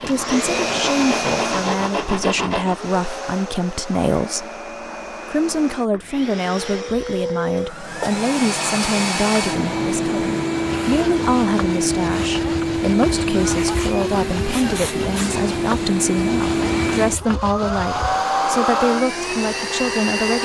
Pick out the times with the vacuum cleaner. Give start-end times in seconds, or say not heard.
0.0-20.4.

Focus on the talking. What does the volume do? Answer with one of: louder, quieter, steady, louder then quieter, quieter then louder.
steady.